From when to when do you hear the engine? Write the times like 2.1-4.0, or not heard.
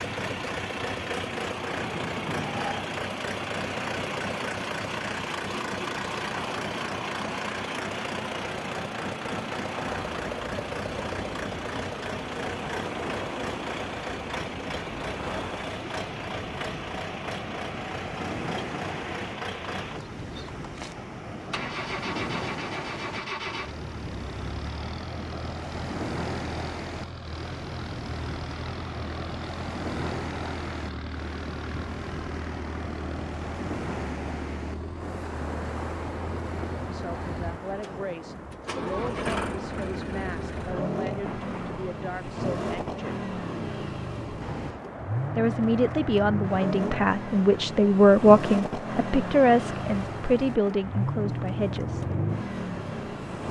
0.0-53.4.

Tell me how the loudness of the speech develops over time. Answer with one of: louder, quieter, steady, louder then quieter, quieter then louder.
louder then quieter.